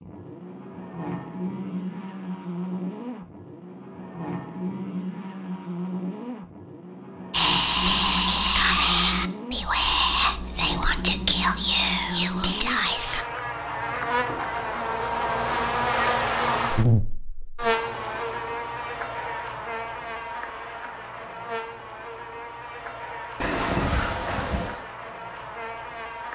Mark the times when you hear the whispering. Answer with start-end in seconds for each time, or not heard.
7.3-13.2.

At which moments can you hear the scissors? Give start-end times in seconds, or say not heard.
23.4-24.9.